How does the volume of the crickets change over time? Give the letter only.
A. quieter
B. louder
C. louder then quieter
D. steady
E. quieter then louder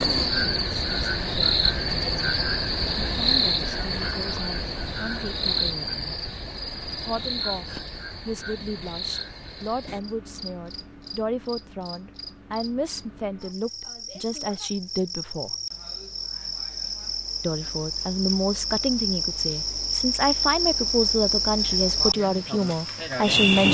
E.